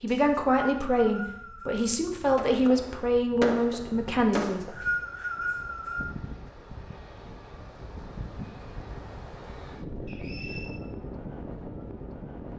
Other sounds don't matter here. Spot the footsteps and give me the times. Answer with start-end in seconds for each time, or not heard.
not heard.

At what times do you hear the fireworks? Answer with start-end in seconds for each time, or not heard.
2.4-4.8.